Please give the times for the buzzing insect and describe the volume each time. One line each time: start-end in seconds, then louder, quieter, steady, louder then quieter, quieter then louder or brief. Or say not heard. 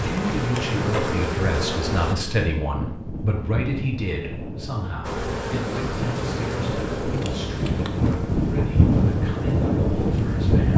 0.0-2.1 brief
5.0-10.7 quieter.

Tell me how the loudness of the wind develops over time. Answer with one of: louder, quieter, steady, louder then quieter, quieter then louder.
louder.